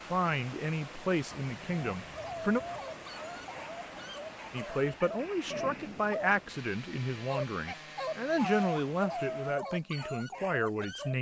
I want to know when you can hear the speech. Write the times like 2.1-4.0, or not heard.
0.1-2.6, 4.5-11.1.